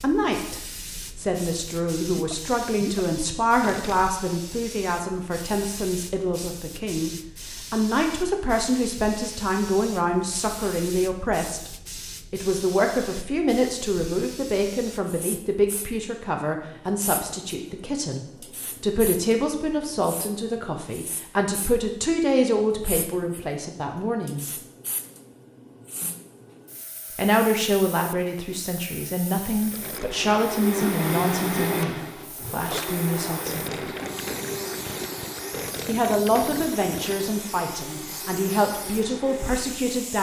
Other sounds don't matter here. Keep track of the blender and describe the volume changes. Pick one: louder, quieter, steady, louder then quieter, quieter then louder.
quieter.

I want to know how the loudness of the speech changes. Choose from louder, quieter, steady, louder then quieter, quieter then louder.
steady.